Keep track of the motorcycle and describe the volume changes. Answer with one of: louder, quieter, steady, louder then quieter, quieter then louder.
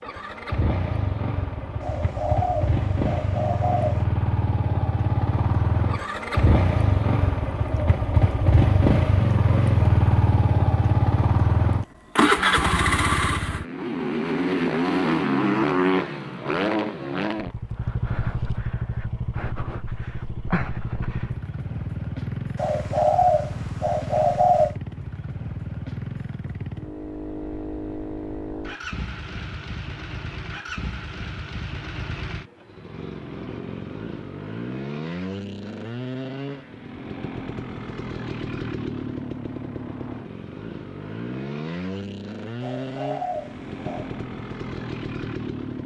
quieter.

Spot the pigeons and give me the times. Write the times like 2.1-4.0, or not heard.
1.8-4.0, 22.6-24.8, 42.6-44.2.